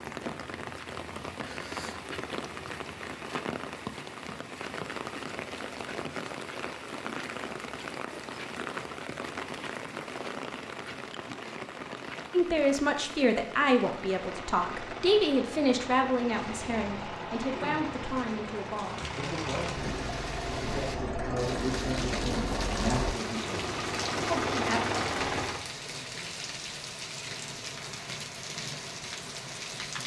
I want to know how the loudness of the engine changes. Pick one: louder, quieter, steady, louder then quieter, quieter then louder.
louder.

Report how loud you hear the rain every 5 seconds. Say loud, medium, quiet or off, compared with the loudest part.
loud, loud, loud, medium, loud, loud.